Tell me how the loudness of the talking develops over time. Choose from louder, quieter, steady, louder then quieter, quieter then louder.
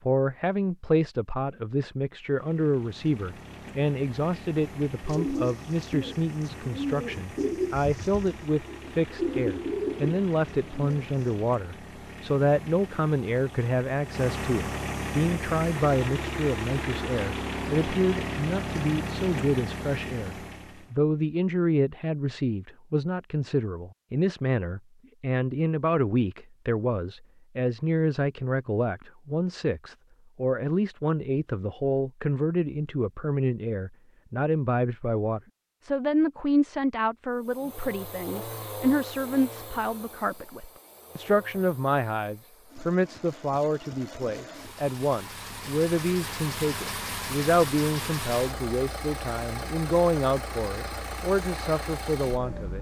steady.